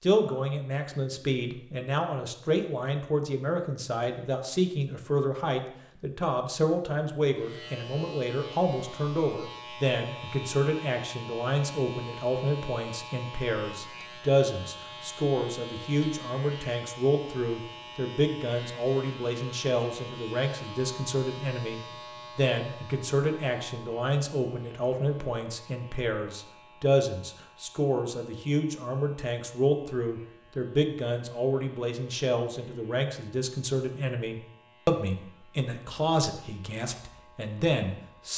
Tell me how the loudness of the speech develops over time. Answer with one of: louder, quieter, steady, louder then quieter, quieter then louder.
steady.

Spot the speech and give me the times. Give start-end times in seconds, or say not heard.
0.0-38.3.